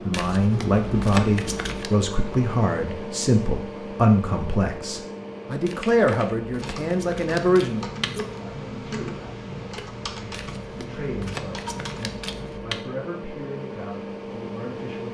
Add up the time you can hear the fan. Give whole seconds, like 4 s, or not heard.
15 s.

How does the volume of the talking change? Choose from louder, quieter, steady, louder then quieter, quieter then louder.
quieter.